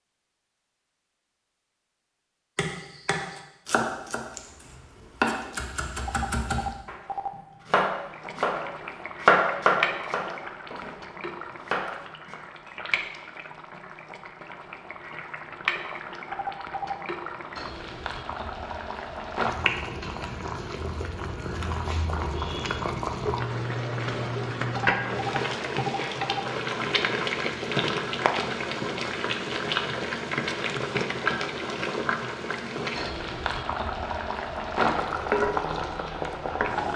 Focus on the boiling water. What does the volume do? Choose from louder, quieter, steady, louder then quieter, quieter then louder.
louder.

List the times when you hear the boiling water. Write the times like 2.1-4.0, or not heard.
8.1-36.9.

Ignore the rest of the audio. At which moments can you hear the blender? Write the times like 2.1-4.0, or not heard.
not heard.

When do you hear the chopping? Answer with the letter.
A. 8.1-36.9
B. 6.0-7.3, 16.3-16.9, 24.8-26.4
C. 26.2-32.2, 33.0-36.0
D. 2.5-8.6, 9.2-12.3
D.